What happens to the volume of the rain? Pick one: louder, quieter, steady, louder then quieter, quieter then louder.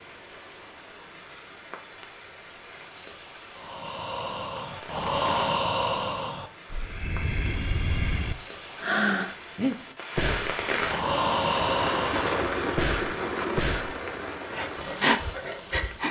louder.